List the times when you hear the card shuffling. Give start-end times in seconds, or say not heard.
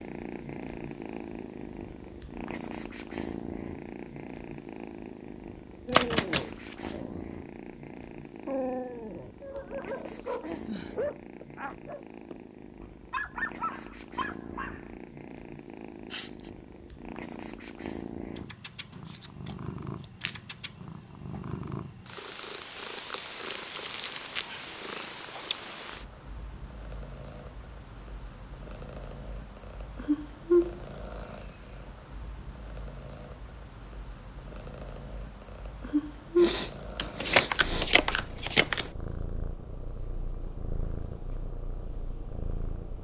5.9-6.9, 18.9-20.4, 37.0-38.9.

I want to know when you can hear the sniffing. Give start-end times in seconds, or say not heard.
10.2-11.0, 15.7-16.5, 36.4-37.9.